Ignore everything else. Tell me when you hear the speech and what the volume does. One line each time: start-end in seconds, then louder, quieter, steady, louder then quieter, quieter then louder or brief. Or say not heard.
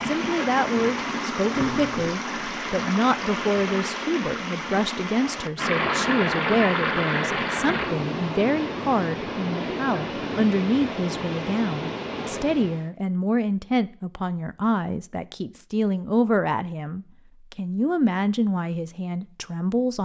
0.1-20.0 steady.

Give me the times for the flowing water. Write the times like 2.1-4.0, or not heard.
0.0-12.9.